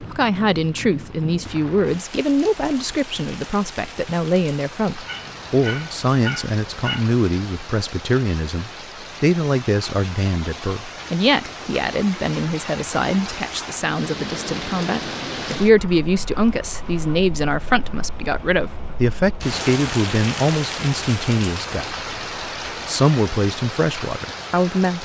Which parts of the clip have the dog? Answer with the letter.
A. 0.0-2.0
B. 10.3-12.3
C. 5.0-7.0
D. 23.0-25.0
C.